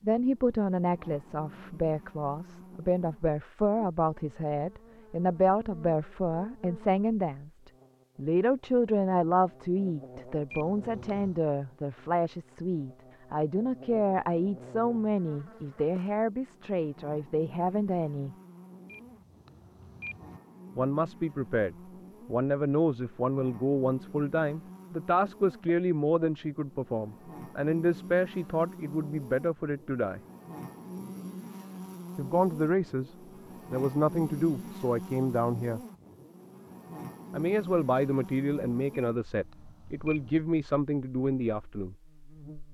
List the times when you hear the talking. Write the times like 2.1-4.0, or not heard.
0.0-18.4, 20.8-30.2, 32.1-35.8, 37.3-42.0.